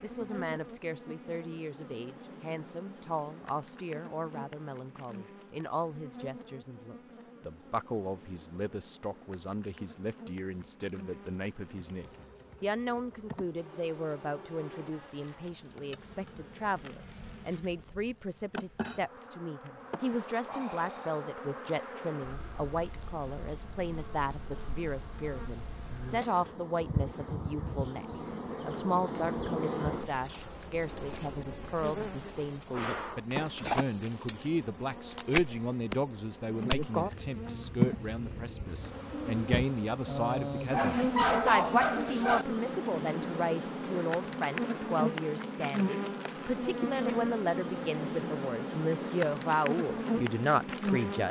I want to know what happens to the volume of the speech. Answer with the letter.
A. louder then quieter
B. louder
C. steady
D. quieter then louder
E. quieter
B.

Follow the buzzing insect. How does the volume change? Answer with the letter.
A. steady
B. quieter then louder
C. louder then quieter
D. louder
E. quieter
D.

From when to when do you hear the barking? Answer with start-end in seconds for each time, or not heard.
40.7-42.5.